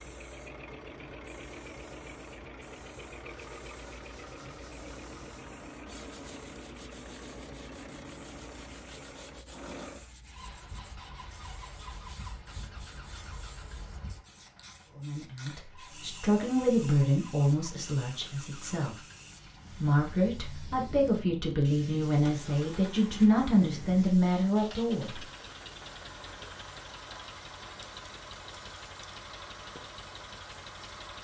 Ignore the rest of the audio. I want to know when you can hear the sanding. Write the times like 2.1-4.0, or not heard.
3.1-13.9.